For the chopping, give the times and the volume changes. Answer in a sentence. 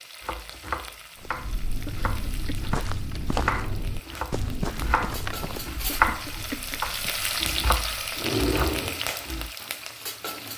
You can hear the chopping from 0.2 to 9.5 s, getting louder then quieter.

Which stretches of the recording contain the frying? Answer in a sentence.
The frying can be heard from 0.0 to 10.5 s.